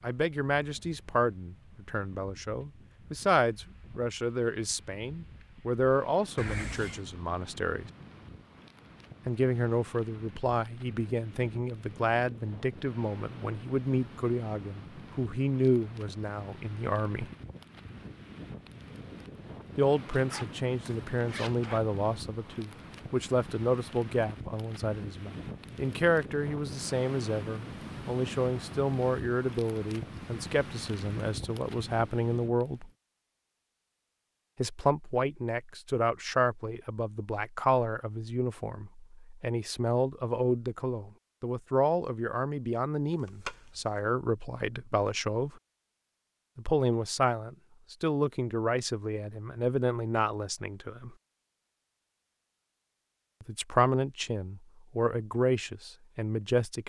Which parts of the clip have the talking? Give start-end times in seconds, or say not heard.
0.0-7.9, 9.2-17.2, 19.8-32.9, 34.5-45.5, 46.5-51.1, 53.4-56.8.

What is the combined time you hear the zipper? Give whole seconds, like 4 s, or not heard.
3 s.